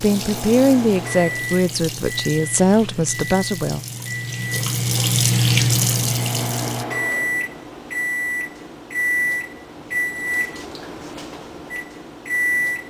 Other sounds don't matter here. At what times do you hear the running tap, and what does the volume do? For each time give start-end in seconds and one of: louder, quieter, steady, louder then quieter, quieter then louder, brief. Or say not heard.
0.0-6.8 louder.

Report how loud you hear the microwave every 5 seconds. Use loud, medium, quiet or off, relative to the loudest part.
medium, loud, loud.